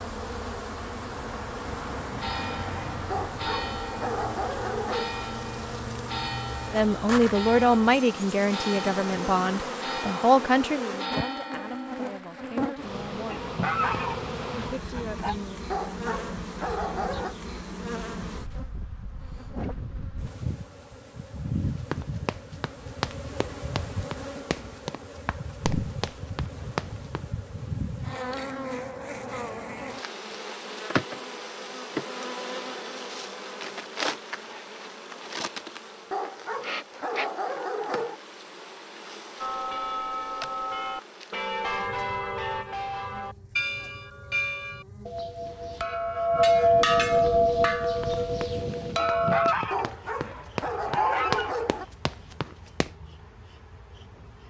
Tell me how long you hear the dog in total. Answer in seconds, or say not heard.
8 s.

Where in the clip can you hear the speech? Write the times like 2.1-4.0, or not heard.
6.7-13.5, 14.5-15.6.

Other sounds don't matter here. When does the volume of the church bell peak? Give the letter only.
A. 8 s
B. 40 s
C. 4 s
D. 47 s
D.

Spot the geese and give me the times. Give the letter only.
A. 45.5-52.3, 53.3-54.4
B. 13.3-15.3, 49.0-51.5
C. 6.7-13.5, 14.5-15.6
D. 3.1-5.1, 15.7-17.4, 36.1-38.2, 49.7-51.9
B.